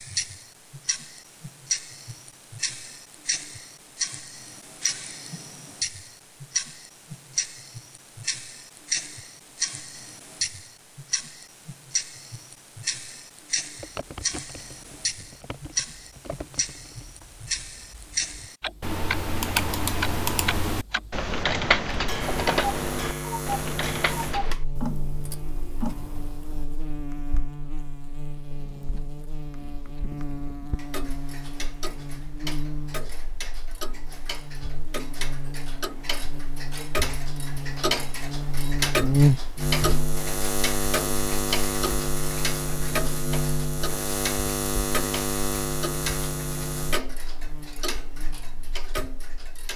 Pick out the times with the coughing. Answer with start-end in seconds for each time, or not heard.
not heard.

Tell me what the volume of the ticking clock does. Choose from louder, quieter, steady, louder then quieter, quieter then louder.
steady.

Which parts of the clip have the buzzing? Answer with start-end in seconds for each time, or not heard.
22.2-49.7.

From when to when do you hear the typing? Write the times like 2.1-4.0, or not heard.
13.8-24.6.